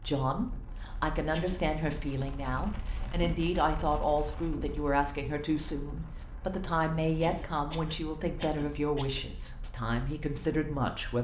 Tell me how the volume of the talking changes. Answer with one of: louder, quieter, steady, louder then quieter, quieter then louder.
steady.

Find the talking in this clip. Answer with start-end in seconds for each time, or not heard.
0.0-11.1.